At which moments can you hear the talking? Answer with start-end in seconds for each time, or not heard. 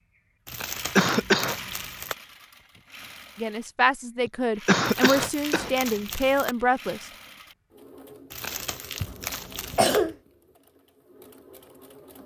3.4-7.0.